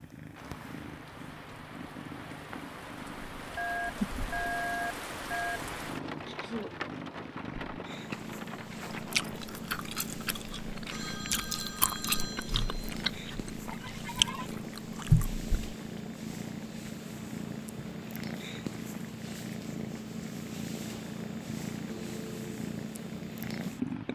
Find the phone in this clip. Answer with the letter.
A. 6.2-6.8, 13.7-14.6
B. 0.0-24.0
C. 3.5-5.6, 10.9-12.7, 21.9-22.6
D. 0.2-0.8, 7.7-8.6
C.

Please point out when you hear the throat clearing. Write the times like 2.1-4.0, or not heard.
6.2-6.8, 13.7-14.6.